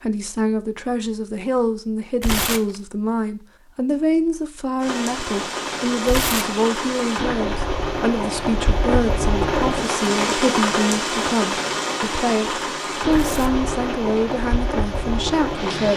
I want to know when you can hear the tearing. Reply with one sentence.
The tearing can be heard from 2.2 to 2.8 s, from 6.0 to 6.6 s and from 13.1 to 13.6 s.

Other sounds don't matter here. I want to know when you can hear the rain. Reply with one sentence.
You can hear the rain from 4.8 to 15.9 s.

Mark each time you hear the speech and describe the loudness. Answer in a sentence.
You can hear the speech from 0.0 to 15.9 s, at a steady volume.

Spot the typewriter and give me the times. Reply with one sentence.
The typewriter can't be heard in this clip.